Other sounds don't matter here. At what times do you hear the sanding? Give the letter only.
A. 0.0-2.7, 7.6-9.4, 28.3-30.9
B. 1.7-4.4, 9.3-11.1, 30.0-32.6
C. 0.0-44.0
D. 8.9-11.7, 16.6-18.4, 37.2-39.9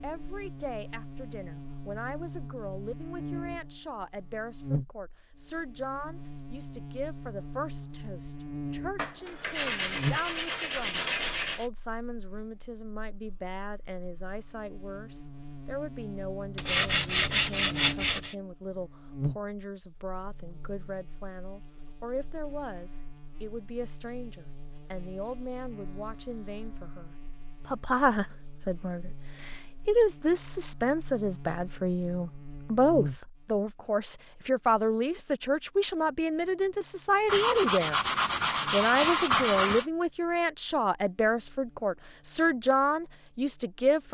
D.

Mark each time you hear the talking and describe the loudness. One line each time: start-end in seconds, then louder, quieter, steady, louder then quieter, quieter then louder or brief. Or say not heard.
0.0-44.0 louder.